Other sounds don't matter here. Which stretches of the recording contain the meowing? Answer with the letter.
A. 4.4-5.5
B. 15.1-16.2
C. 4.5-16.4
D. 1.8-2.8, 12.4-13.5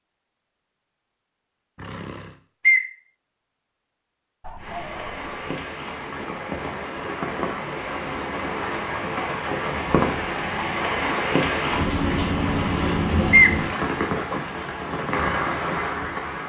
D.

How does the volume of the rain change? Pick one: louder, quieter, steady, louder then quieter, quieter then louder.
louder.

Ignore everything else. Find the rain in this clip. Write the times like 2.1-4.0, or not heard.
4.5-16.4.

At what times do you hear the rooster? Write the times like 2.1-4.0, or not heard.
4.4-5.5.